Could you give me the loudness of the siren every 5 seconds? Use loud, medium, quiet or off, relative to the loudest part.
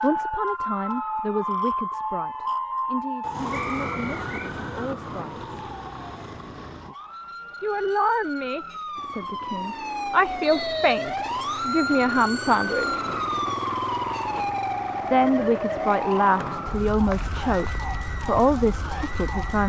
loud, medium, loud, loud.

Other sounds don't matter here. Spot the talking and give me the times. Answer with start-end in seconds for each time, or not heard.
0.0-5.5, 7.6-13.0, 15.1-19.6.